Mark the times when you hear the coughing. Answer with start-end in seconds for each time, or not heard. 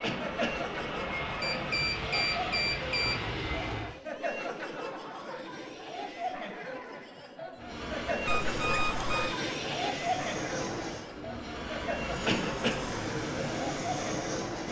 0.0-0.7, 12.2-12.9.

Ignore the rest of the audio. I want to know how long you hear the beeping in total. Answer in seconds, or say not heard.
3 s.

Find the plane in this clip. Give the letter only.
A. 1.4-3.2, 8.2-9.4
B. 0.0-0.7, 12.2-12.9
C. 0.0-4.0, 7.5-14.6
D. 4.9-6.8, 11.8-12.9
C.